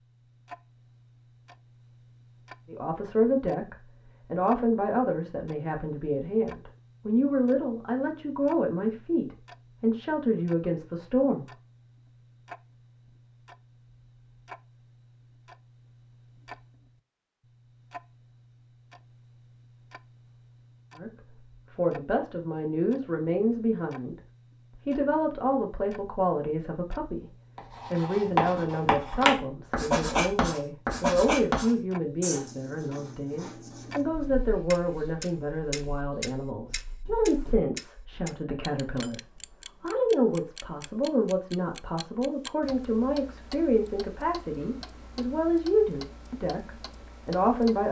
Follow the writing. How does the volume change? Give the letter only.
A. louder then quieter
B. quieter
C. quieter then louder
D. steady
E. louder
B.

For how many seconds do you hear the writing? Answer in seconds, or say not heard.
11 s.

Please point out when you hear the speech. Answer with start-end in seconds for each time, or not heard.
2.6-11.5, 20.9-24.1, 24.8-47.8.